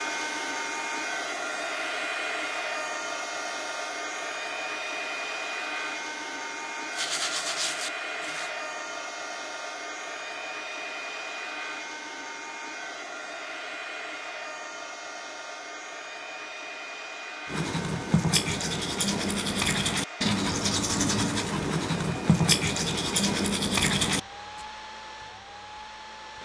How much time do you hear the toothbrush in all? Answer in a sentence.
You can hear the toothbrush for 8 seconds altogether.